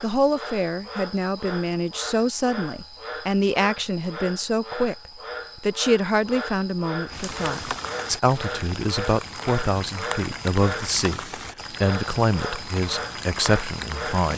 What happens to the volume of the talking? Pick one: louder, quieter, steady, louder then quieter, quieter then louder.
steady.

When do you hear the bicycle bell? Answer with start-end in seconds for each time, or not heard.
not heard.